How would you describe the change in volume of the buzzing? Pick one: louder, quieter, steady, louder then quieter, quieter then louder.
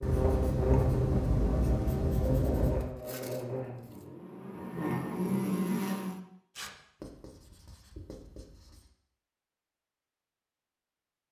quieter then louder.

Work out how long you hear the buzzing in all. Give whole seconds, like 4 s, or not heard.
6 s.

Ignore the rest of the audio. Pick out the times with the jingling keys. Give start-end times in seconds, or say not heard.
not heard.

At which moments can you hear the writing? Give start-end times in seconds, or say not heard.
0.0-2.9, 7.0-8.8.